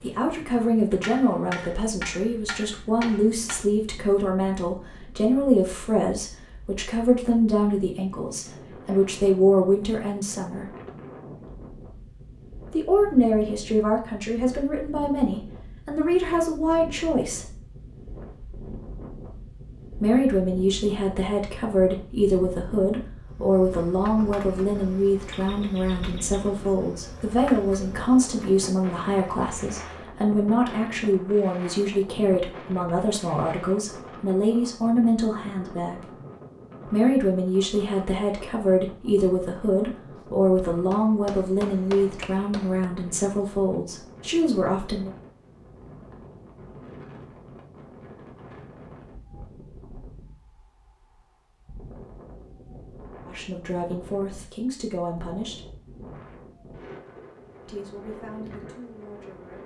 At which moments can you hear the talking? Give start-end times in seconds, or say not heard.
0.0-10.7, 12.7-17.5, 20.0-36.1, 36.9-45.1, 53.2-55.6, 57.6-59.6.